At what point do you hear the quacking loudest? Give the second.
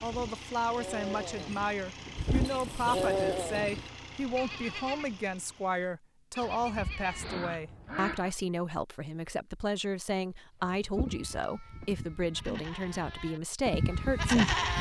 8 s.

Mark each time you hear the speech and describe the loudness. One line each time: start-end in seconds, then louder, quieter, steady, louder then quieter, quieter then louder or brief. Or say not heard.
0.0-14.6 steady.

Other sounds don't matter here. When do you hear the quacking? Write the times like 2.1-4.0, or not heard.
6.4-8.3.